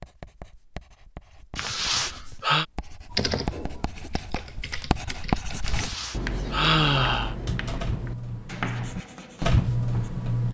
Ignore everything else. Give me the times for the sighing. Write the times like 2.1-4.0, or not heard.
1.6-2.6, 5.6-7.3.